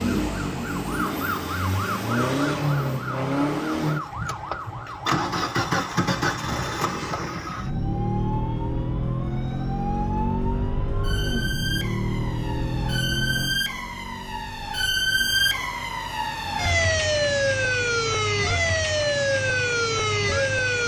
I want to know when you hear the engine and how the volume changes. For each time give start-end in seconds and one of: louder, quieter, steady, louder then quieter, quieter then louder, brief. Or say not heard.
0.0-20.8 quieter.